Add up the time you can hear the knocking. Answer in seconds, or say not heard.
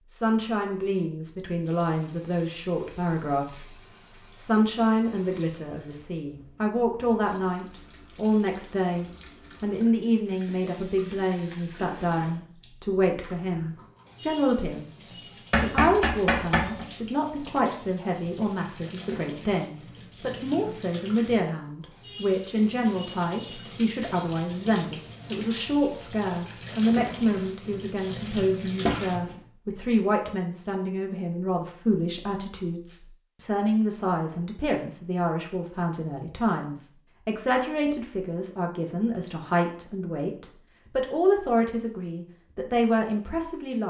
2 s.